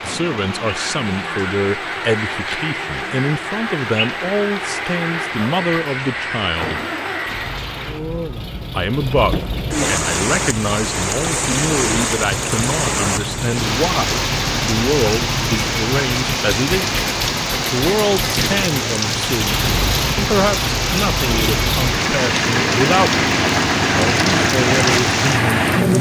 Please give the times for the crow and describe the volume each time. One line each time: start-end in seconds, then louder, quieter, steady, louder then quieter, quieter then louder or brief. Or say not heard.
0.6-7.7 steady.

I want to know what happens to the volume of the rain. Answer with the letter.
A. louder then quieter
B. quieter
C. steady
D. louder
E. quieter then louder
D.